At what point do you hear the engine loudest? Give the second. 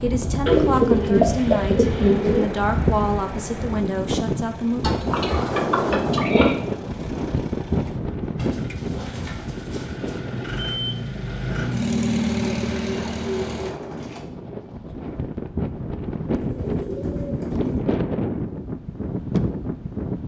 12 s.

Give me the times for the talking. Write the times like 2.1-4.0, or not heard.
0.0-4.8.